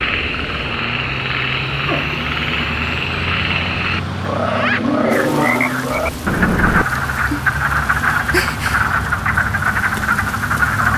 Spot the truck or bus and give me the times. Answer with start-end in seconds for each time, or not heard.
0.0-10.8.